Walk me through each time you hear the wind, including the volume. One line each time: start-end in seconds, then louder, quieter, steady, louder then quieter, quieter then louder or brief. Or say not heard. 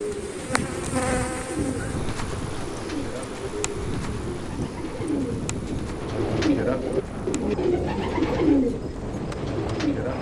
0.1-10.1 steady.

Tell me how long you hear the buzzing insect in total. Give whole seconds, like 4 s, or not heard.
10 s.